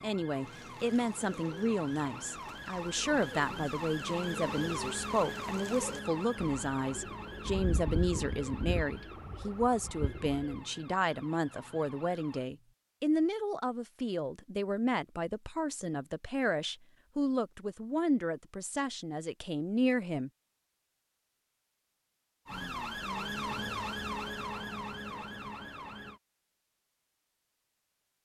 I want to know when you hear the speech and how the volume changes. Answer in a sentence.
You can hear the speech from 0.0 to 20.3 s, at a steady volume.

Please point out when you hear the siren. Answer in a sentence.
You can hear the siren from 0.0 to 12.5 s and from 22.4 to 26.2 s.